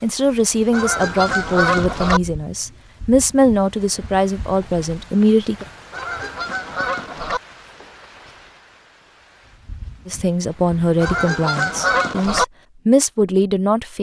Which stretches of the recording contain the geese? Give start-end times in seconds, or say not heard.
0.7-2.2, 5.9-7.4, 11.0-12.4.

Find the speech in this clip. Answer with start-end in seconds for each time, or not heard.
0.0-5.7, 10.1-13.9.